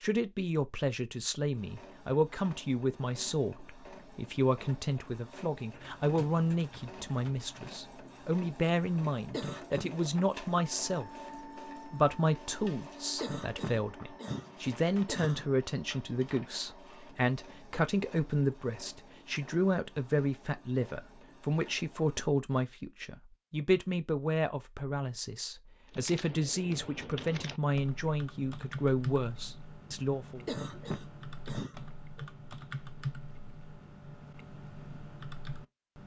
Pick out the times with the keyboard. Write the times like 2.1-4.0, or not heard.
5.7-7.5, 25.9-36.0.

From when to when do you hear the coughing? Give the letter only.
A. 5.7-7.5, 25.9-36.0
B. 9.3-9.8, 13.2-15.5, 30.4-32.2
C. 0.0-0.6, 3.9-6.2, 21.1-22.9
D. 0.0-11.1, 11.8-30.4
B.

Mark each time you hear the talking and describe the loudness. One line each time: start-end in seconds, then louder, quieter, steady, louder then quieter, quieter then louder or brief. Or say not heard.
0.0-11.1 steady
11.8-30.4 steady.